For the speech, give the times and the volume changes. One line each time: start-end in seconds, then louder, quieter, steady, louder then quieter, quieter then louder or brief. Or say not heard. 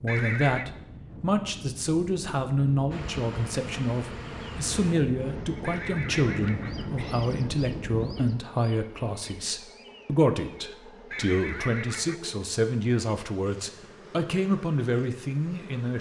0.0-15.9 steady.